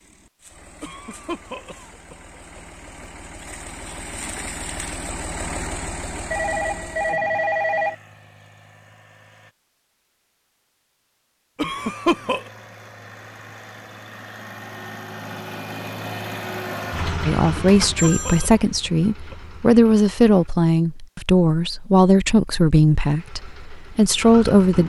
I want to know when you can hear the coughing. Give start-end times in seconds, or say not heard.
0.8-2.6, 11.6-12.4, 17.6-19.4.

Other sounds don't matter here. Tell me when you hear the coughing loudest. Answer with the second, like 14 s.
12 s.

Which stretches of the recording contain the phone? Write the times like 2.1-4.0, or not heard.
6.3-8.0, 16.9-18.5.